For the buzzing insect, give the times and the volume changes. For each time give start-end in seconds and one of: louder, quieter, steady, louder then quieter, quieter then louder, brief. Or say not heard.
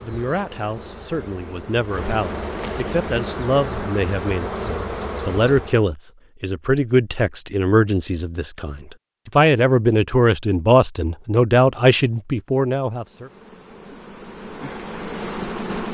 0.0-5.9 louder
12.9-15.8 brief.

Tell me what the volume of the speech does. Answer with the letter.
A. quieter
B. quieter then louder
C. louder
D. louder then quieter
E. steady
C.